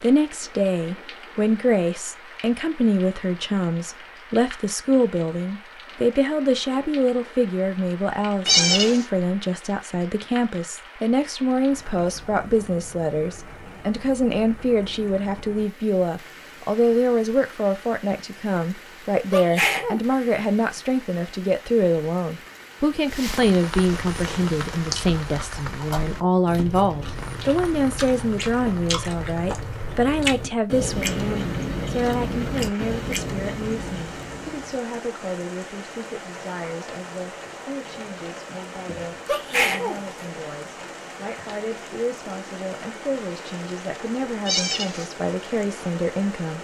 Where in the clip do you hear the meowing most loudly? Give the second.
9 s.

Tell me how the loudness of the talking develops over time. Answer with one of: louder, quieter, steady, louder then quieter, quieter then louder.
quieter.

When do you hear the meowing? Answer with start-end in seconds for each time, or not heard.
8.4-9.1, 44.5-45.0.